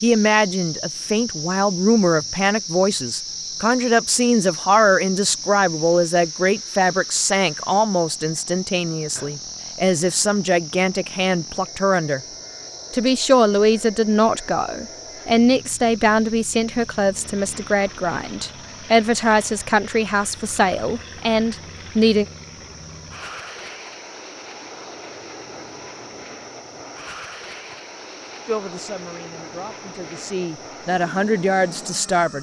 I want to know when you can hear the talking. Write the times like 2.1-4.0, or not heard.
0.0-12.2, 12.9-22.2, 28.4-32.3.